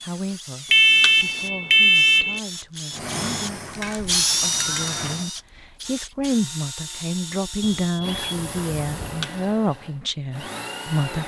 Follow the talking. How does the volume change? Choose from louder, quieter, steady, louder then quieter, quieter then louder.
louder.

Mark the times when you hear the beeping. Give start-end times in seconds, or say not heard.
0.7-2.4, 7.6-9.2.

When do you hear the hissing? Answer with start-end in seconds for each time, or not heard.
2.9-5.3.